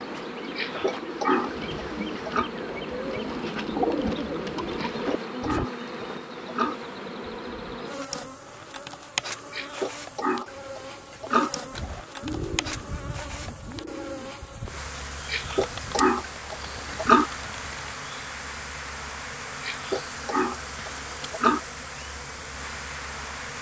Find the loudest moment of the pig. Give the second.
17 s.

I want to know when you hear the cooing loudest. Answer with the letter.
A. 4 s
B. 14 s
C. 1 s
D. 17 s
A.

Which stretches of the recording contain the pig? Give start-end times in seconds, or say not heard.
0.6-2.5, 4.8-6.8, 9.5-11.5, 15.3-17.2, 19.6-21.6.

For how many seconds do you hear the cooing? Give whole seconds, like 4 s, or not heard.
12 s.